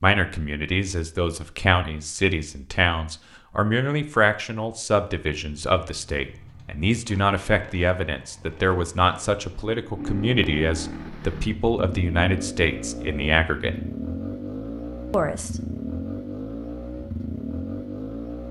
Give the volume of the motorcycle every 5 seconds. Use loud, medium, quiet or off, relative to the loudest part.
off, quiet, loud, loud.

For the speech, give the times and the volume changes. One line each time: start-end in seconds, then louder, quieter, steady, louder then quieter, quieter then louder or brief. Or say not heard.
0.0-13.8 steady
15.1-15.6 brief.